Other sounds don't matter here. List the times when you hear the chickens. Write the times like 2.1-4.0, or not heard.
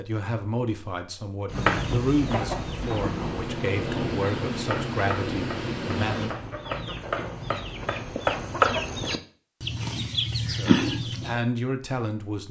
1.5-11.4.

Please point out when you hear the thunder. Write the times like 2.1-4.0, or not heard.
2.8-6.3.